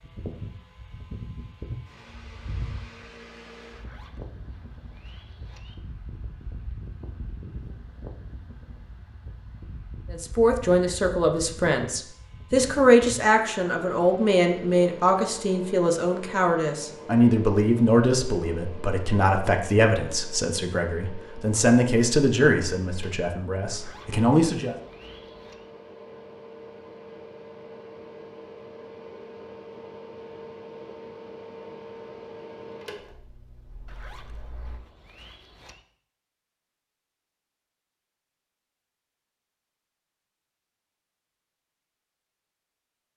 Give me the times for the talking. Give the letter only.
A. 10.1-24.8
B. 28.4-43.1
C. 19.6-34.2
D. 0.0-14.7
A.